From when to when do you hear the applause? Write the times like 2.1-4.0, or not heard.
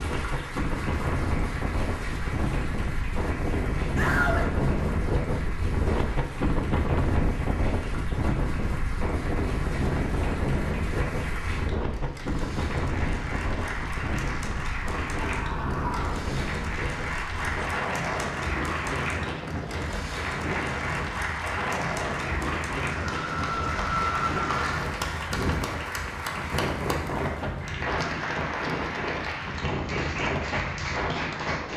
0.0-31.7.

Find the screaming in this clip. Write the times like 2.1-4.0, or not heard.
4.0-4.5, 15.2-16.2, 23.1-24.8.